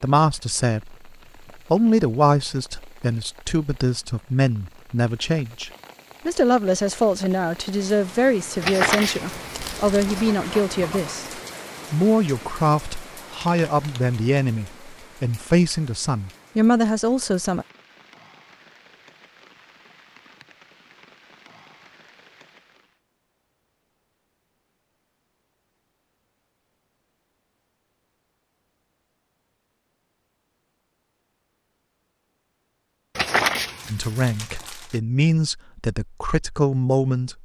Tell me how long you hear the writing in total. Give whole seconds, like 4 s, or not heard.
4 s.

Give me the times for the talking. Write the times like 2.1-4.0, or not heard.
0.0-0.9, 1.7-17.6, 33.9-37.4.